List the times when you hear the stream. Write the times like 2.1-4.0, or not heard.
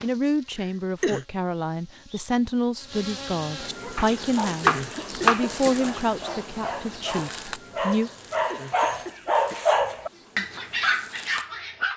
not heard.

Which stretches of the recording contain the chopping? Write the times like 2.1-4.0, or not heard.
4.0-5.9.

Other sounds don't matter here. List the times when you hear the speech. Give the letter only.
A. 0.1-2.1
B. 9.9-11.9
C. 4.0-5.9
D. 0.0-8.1
D.